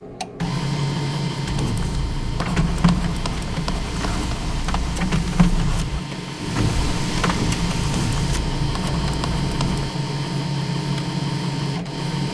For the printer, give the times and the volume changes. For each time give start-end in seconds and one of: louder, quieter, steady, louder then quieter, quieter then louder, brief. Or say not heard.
0.0-12.2 steady.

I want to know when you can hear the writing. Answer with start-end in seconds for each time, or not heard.
1.4-9.9.